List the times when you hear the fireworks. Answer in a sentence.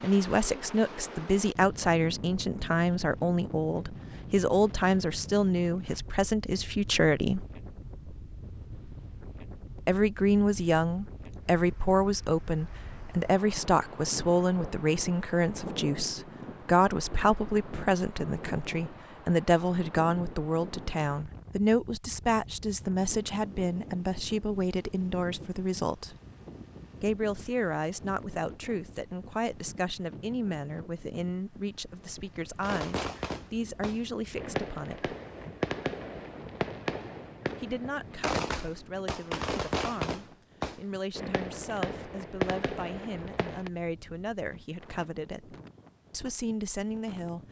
The fireworks can be heard from 32.6 to 43.7 s.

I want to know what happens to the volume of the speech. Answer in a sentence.
The volume of the speech goes down.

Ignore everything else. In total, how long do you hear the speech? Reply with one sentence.
You can hear the speech for 42 seconds altogether.